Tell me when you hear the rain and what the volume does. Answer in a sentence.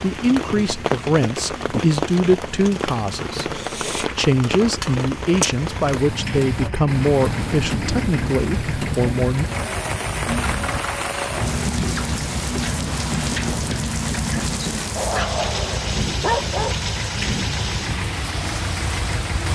The rain can be heard from 0.0 to 19.4 s, at a steady volume.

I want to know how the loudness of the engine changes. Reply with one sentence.
The volume of the engine goes up.